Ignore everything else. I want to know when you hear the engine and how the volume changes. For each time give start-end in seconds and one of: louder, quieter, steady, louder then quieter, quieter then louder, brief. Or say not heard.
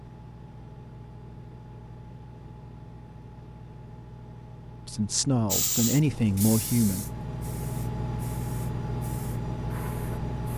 0.0-10.5 louder.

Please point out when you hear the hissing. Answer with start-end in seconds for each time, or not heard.
5.5-10.5.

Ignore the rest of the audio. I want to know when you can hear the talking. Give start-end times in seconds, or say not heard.
4.8-7.1.